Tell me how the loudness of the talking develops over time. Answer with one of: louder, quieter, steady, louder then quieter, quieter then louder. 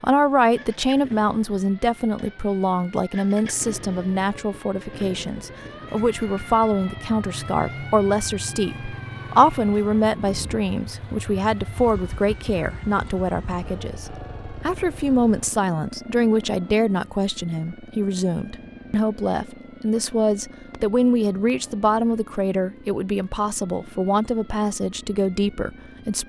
steady.